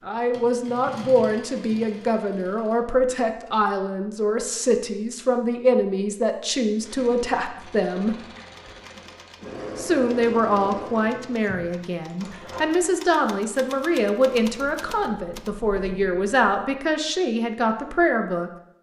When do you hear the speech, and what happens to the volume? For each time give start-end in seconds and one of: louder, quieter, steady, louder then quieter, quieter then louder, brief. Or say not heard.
0.0-8.2 steady
9.8-18.5 steady.